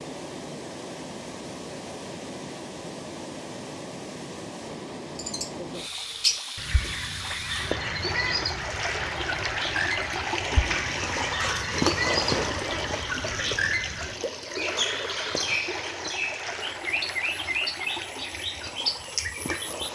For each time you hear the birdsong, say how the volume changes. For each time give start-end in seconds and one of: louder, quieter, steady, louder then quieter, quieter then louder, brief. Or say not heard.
5.2-19.9 steady.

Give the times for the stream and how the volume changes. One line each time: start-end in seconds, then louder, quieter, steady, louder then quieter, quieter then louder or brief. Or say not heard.
0.0-19.9 louder then quieter.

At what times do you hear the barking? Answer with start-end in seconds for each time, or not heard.
10.7-11.8.